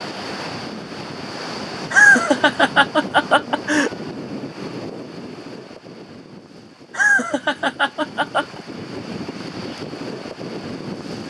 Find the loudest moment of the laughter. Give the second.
2 s.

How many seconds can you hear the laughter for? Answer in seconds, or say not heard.
4 s.